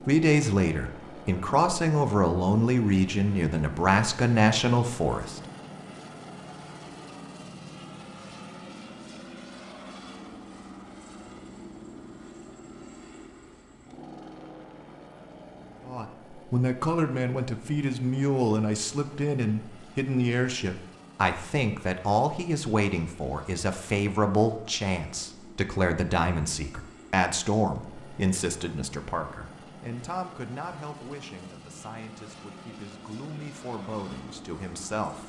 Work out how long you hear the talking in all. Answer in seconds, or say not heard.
25 s.